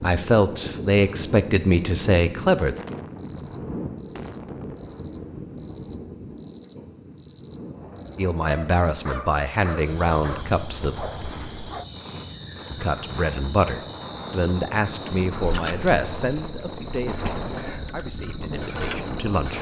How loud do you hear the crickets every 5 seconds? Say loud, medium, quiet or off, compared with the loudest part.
medium, loud, loud, loud.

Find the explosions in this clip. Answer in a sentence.
The explosions can be heard from 2.8 to 4.8 s.